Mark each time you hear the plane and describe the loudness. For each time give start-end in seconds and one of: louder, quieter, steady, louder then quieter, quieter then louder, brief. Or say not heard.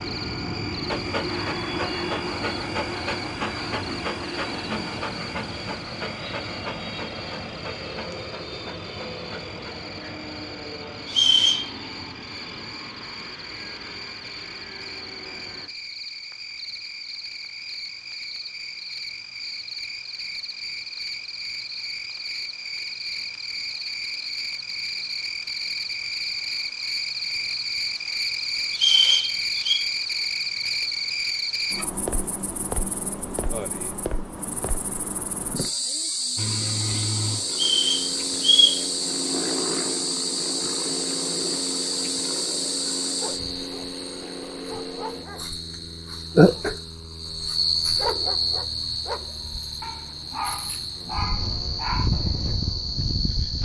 0.0-15.7 quieter
36.4-53.6 quieter.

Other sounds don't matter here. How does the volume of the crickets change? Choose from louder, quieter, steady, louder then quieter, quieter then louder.
louder.